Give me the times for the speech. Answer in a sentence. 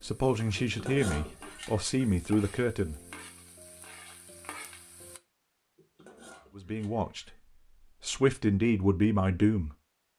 The speech can be heard from 0.0 to 3.0 s, from 6.5 to 7.3 s and from 8.0 to 9.7 s.